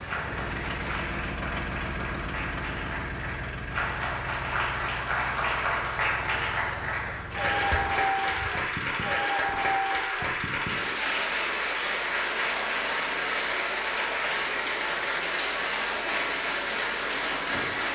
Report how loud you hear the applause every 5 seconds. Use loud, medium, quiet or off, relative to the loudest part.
medium, loud, loud, loud.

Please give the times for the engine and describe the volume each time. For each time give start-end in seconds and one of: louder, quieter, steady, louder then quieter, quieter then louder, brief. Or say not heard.
0.0-8.5 quieter.